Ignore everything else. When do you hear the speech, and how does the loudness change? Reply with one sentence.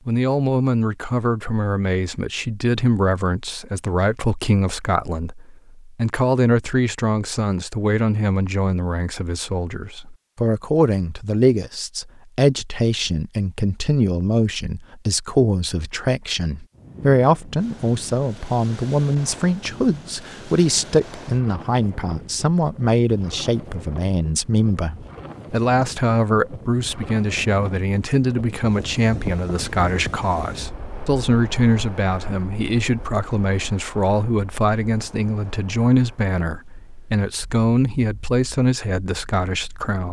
You can hear the speech from 0.1 to 40.0 s, at a steady volume.